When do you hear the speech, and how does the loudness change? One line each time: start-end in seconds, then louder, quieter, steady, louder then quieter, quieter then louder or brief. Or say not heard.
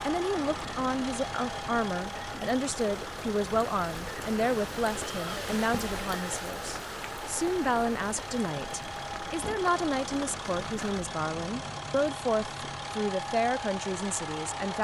0.0-14.7 steady.